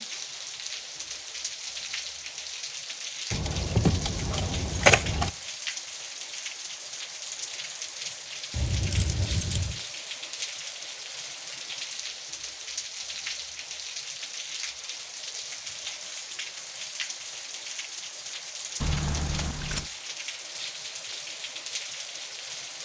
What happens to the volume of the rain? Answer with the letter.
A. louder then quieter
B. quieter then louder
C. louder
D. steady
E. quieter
D.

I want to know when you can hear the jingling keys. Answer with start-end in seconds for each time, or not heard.
3.3-5.3, 8.5-9.8, 18.8-19.9.